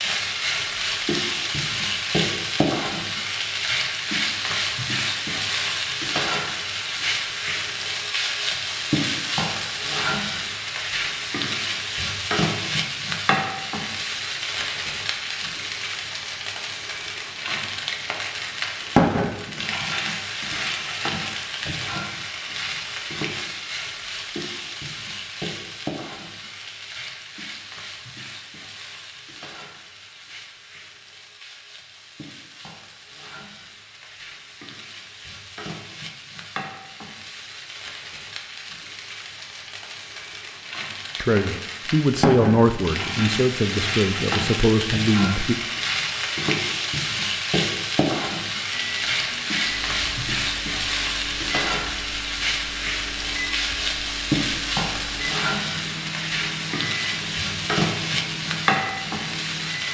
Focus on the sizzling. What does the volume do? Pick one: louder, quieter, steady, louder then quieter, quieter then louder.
quieter then louder.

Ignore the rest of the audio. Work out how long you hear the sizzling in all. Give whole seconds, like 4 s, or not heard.
60 s.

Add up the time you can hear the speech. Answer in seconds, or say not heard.
4 s.